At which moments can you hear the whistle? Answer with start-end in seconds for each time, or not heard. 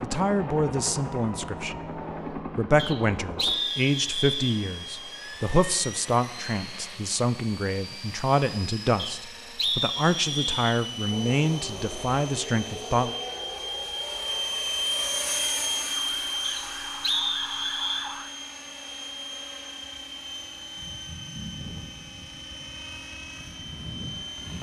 2.8-4.6, 8.9-10.8, 16.4-18.1.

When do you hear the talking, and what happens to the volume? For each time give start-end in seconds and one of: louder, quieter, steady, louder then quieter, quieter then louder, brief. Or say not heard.
0.0-13.2 steady.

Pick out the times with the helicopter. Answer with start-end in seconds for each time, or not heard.
0.0-24.5.